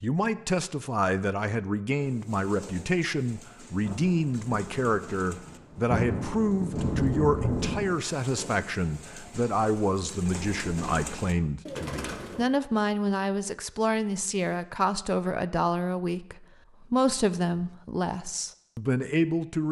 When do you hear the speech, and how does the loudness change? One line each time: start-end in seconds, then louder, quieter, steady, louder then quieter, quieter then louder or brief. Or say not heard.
0.0-19.6 steady.